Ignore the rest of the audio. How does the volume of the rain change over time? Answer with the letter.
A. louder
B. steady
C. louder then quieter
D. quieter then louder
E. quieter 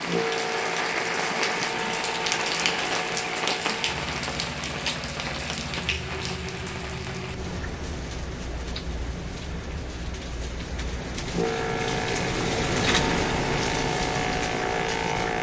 D.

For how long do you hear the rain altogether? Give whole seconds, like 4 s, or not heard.
15 s.